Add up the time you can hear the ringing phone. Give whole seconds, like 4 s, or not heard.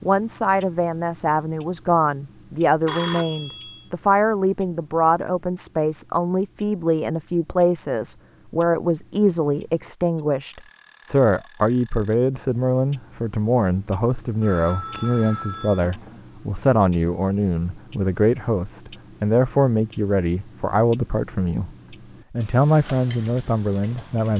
3 s.